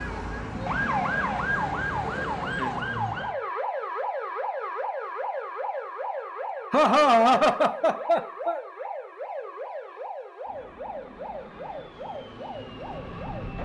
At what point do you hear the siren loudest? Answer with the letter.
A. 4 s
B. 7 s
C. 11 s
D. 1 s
D.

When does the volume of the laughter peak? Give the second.
7 s.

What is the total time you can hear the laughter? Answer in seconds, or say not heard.
2 s.